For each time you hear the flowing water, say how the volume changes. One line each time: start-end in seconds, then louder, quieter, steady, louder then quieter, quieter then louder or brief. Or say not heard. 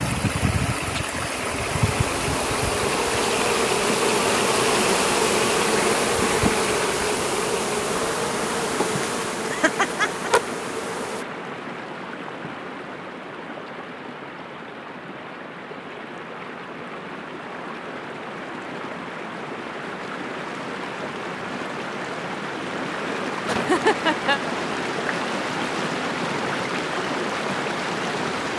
0.0-28.5 quieter then louder.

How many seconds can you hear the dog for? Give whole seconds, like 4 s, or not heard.
not heard.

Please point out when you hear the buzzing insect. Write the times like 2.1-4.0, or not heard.
0.0-11.2.